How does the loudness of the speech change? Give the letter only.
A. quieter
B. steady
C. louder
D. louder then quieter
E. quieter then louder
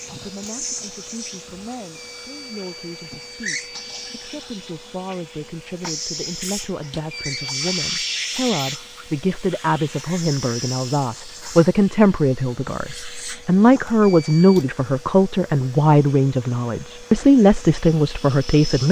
C.